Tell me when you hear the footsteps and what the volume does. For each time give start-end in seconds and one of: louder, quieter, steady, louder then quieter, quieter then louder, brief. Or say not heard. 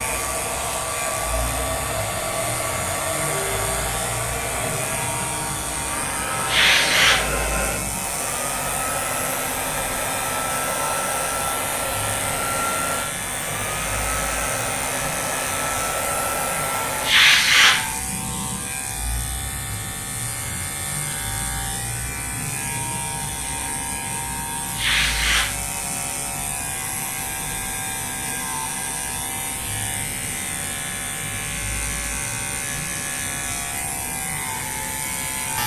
not heard.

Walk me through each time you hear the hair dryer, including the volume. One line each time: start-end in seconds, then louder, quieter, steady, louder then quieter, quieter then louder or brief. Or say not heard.
0.0-17.1 steady.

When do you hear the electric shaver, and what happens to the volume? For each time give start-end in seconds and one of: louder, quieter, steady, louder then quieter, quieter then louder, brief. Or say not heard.
0.0-35.6 steady.